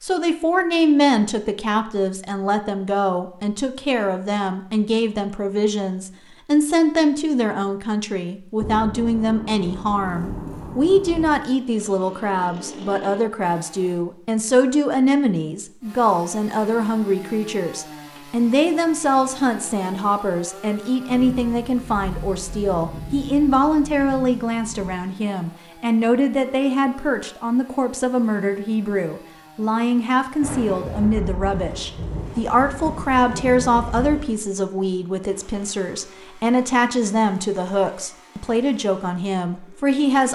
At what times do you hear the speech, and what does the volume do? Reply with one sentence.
The speech can be heard from 0.0 to 40.3 s, at a steady volume.